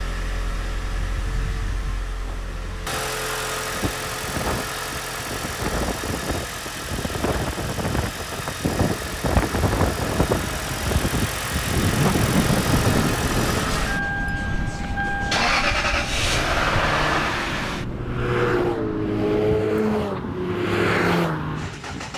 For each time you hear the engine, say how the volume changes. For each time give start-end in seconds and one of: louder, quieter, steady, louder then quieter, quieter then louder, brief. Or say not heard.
0.0-22.1 louder.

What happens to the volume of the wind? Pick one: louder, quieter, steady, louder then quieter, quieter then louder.
louder then quieter.